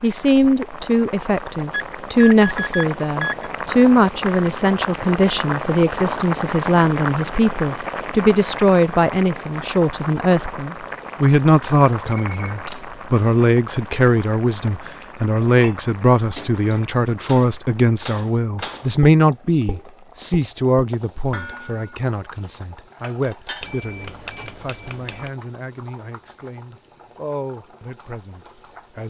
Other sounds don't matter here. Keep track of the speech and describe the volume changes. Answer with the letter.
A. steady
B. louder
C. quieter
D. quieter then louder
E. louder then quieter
C.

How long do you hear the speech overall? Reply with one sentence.
You can hear the speech for 29 seconds altogether.